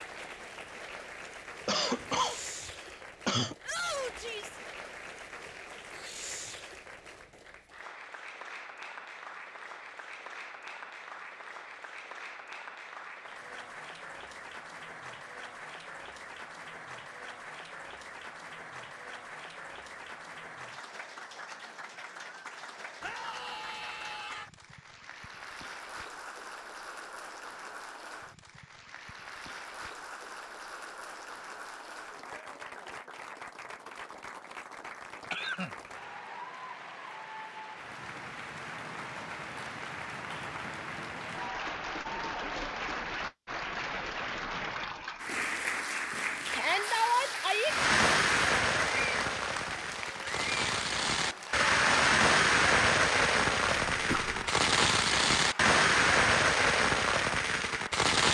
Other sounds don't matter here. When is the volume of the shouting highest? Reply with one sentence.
The loudest moment of the shouting is at 47 seconds.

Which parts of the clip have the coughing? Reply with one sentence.
The coughing can be heard from 1.6 to 3.5 s, from 35.2 to 36.2 s and from 53.9 to 54.5 s.